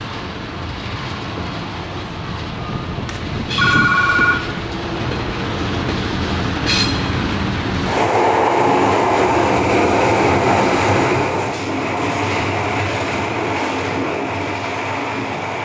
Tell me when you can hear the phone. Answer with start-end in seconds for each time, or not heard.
3.0-4.3.